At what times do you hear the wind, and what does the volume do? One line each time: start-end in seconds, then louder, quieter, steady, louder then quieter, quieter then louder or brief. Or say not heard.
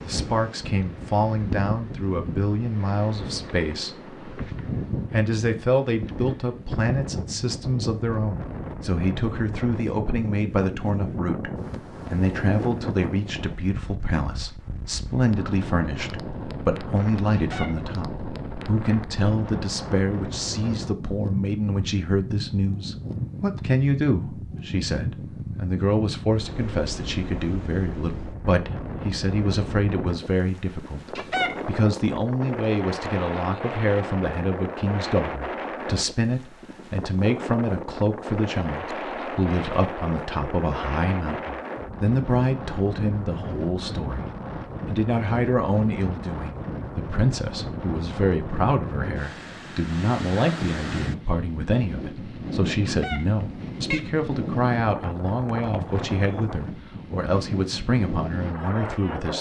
0.0-59.3 steady.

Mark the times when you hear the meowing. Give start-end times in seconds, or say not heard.
17.3-17.9, 31.1-31.8, 52.9-54.1.